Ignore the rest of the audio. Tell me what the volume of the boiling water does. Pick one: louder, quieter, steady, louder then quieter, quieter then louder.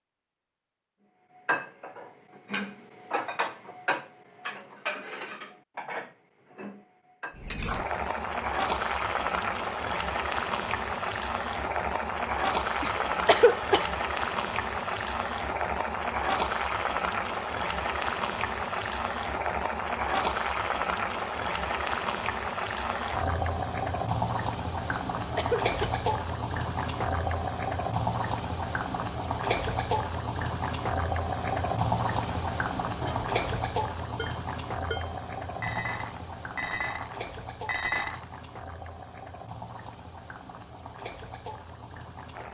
quieter.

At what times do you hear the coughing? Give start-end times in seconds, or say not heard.
12.8-13.9, 25.1-26.0.